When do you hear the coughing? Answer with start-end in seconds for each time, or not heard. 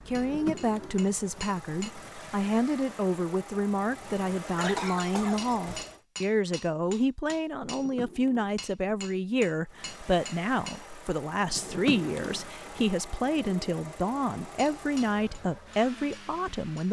4.5-6.0.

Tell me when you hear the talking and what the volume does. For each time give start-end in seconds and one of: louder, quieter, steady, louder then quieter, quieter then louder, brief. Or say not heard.
0.1-16.8 steady.